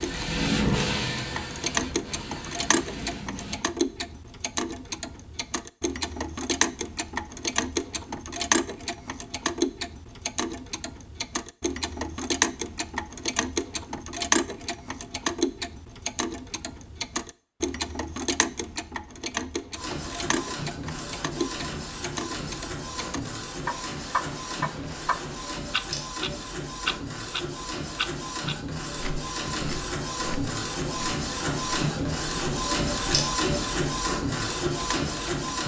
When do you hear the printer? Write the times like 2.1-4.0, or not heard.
0.0-3.6, 19.8-35.6.